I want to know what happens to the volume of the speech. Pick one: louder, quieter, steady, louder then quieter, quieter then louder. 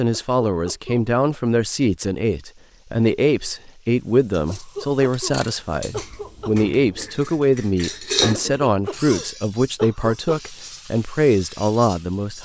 steady.